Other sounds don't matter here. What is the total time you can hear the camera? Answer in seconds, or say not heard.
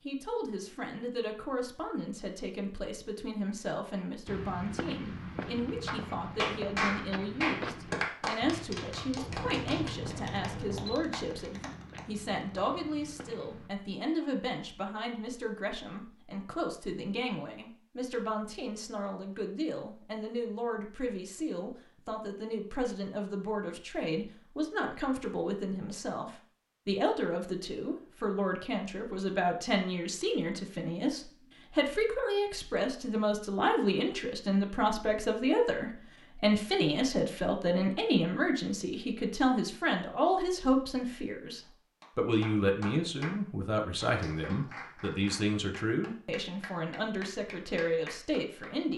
2 s.